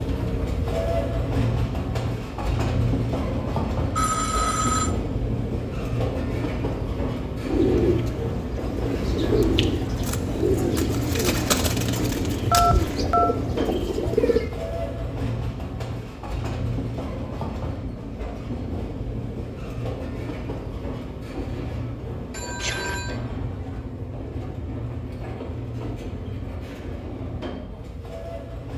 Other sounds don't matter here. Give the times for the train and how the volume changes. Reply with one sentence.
You can hear the train from 0.0 to 28.7 s, getting quieter.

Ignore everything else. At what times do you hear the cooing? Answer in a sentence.
The cooing can be heard from 7.4 to 14.5 s.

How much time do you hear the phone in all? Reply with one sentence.
The phone can be heard for 3 seconds in total.